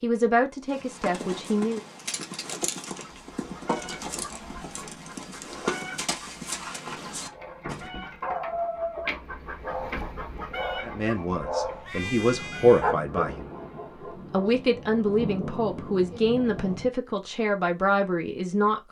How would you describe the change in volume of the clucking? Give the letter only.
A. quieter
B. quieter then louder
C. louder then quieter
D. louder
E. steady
D.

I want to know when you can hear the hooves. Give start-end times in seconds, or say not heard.
0.7-7.8.